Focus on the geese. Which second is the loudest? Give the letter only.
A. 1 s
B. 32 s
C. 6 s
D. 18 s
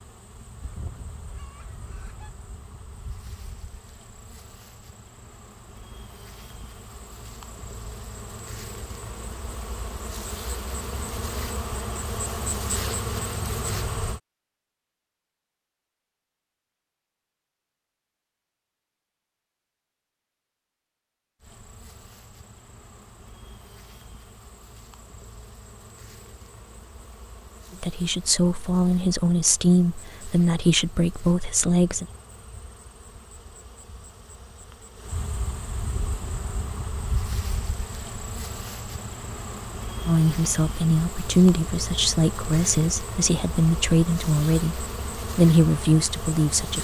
A.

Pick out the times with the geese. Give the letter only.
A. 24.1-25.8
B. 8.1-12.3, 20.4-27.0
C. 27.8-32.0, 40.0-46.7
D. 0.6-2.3
D.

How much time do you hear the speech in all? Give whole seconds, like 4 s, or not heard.
11 s.